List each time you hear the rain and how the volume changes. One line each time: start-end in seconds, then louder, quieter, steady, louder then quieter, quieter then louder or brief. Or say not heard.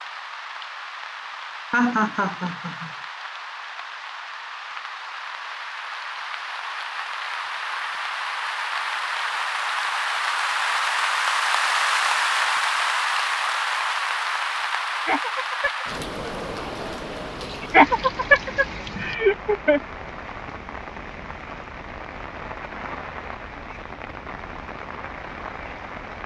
0.0-26.2 louder then quieter.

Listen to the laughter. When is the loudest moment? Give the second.
18 s.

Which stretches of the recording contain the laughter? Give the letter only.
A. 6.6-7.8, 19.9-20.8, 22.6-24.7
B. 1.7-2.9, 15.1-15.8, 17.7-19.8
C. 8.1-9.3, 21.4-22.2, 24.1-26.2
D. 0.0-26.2
B.